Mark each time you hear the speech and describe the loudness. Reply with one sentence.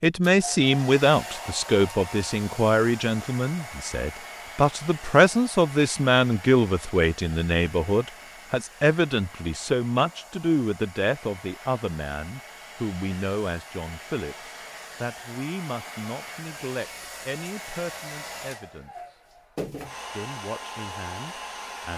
The speech can be heard from 0.0 to 19.2 s, getting quieter; and briefly from 20.1 to 21.9 s.